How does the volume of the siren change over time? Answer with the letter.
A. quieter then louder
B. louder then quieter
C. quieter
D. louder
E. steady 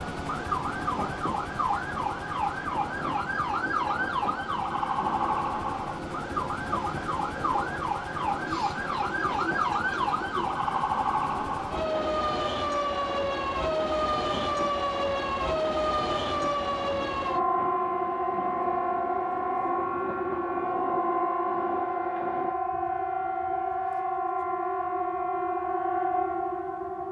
E.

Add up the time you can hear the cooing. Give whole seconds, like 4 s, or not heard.
2 s.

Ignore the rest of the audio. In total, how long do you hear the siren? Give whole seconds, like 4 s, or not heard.
27 s.